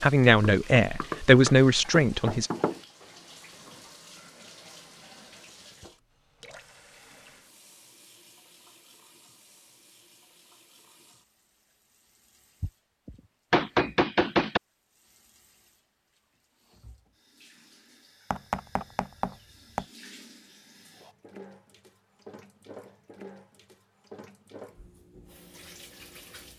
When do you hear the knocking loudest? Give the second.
14 s.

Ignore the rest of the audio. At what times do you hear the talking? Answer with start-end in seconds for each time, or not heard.
0.0-2.5.